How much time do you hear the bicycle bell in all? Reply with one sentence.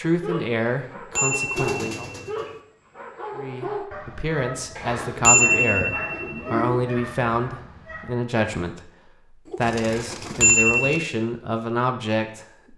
The bicycle bell can be heard for 4 seconds in total.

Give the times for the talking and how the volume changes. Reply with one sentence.
The talking can be heard briefly from 0.0 to 2.1 s; and from 3.4 to 12.7 s, at a steady volume.